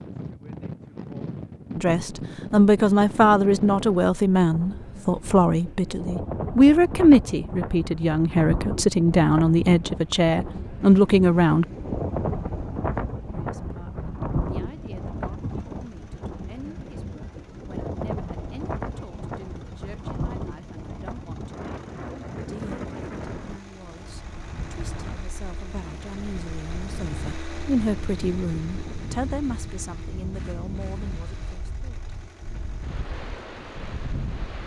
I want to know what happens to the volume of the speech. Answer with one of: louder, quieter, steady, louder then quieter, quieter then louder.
quieter then louder.